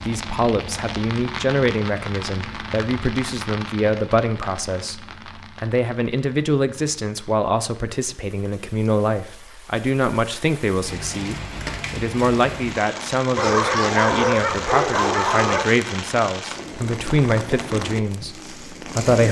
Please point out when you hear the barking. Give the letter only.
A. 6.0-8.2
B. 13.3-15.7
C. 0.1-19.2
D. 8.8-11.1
B.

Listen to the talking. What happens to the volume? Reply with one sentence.
The loudness of the talking stays about the same.